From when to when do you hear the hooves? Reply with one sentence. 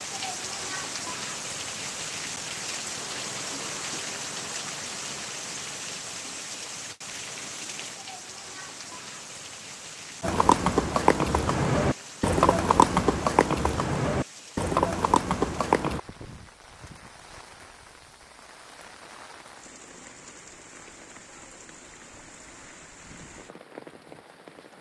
The hooves can be heard from 10.2 to 16.0 s.